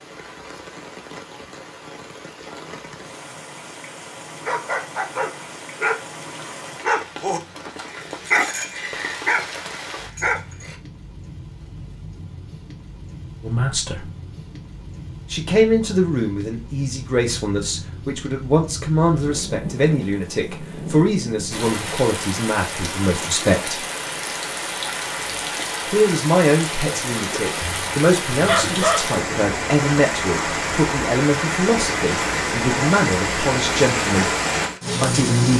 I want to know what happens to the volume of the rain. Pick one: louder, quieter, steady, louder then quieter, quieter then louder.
louder.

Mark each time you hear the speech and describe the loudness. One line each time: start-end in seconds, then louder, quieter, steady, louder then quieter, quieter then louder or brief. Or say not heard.
13.4-14.1 brief
15.3-23.9 steady
25.9-34.3 steady
35.0-35.5 brief.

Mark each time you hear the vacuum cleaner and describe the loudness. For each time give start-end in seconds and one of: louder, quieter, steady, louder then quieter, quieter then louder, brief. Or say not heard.
not heard.